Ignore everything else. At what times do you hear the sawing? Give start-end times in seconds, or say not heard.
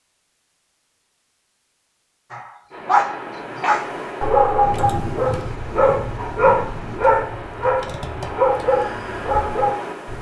not heard.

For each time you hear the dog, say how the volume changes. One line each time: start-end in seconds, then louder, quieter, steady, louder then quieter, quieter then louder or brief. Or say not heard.
2.3-10.1 steady.